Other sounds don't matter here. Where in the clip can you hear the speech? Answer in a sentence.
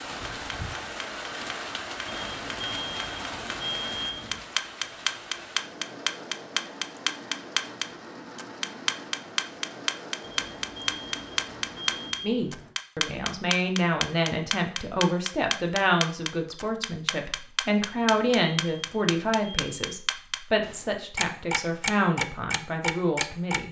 The speech can be heard from 12.2 to 23.6 s.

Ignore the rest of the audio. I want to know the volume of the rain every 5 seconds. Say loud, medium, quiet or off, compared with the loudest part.
loud, medium, medium, off, off.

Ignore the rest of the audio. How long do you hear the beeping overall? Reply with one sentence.
You can hear the beeping for 7 seconds altogether.